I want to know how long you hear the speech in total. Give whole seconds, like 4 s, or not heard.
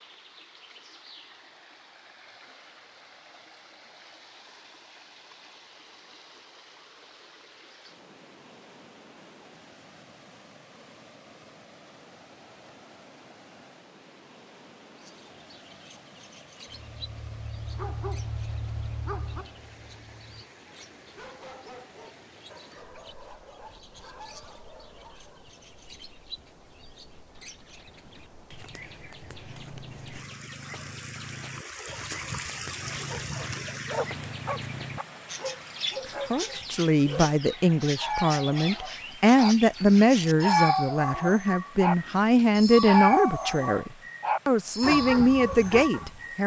10 s.